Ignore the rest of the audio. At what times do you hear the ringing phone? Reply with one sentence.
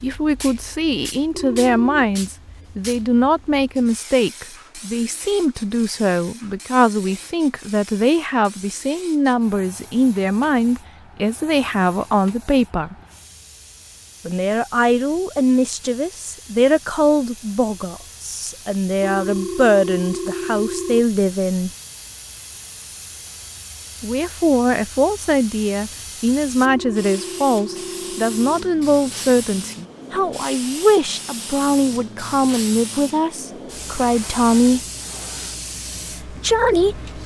You can hear the ringing phone from 1.3 to 2.0 s, from 19.0 to 21.1 s and from 26.6 to 28.6 s.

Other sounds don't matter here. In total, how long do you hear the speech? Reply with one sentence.
The speech can be heard for 32 seconds in total.